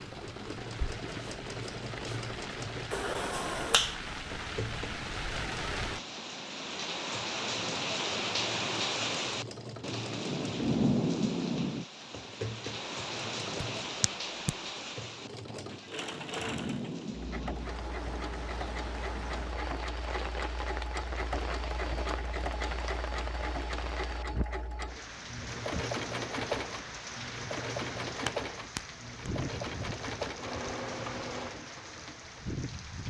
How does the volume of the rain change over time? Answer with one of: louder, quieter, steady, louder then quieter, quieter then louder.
louder then quieter.